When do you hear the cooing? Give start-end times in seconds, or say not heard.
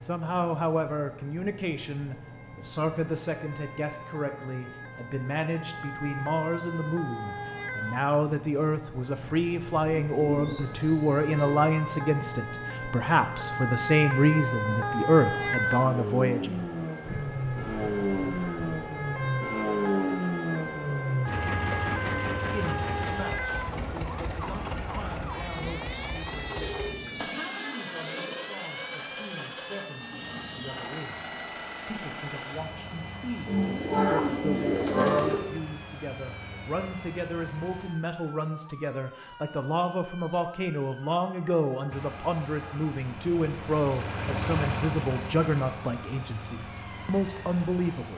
10.1-11.6, 25.5-28.5, 33.5-35.4.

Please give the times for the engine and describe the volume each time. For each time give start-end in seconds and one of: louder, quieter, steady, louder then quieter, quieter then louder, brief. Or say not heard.
0.0-37.9 louder then quieter
41.9-48.1 louder then quieter.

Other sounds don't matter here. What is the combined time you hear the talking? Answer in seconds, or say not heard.
43 s.